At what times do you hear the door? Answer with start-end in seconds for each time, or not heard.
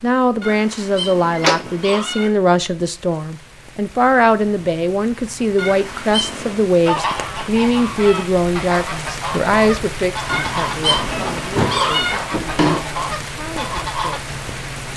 1.3-1.8, 7.0-8.1, 11.6-12.8.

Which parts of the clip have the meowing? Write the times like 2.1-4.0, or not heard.
0.4-2.3, 5.5-6.7, 10.2-12.2.